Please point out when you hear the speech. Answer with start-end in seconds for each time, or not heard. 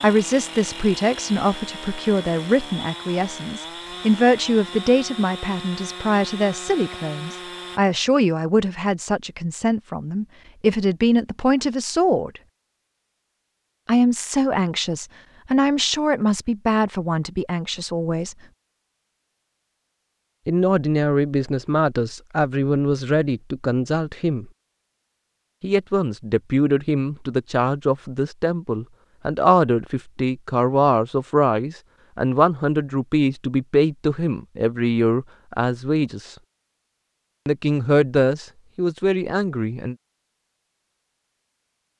0.0-12.4, 13.8-18.4, 20.4-24.4, 25.6-36.4, 37.5-40.0.